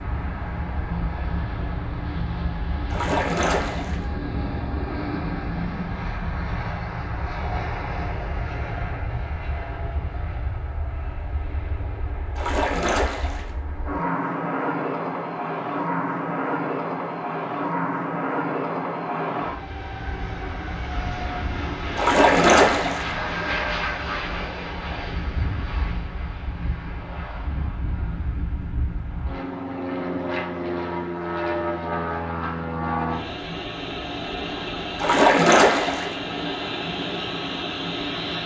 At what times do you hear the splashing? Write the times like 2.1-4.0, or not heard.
2.9-4.0, 12.3-13.5, 21.9-23.1, 35.0-36.1.